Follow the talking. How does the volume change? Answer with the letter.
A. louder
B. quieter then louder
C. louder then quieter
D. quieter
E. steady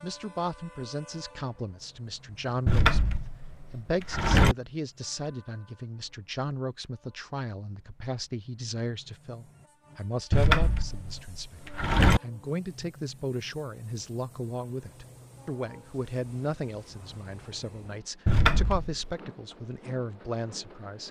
E.